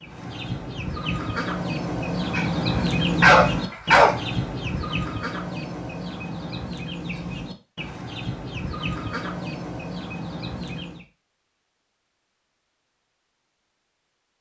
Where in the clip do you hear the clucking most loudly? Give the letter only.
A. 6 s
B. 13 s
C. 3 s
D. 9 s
C.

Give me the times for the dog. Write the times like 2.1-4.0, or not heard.
2.4-4.2.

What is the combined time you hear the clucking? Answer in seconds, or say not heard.
11 s.